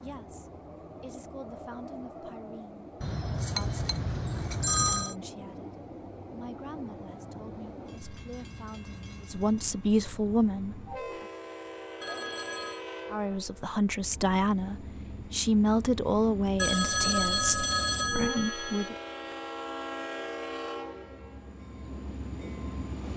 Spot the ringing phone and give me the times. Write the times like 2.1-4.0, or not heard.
3.0-5.2, 12.0-12.8, 16.6-18.9.